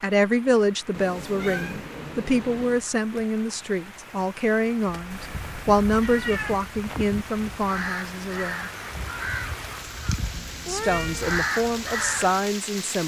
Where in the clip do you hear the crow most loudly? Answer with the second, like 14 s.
11 s.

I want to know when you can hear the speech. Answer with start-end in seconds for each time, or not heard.
0.0-8.7, 10.7-13.0.